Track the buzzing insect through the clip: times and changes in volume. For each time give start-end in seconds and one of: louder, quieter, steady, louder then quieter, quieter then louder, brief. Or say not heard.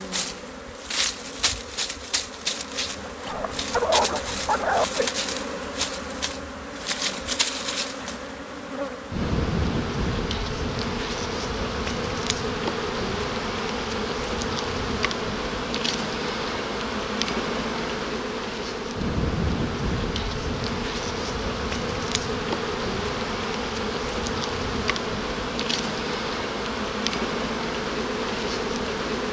0.0-29.2 steady.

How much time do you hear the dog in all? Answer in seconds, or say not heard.
2 s.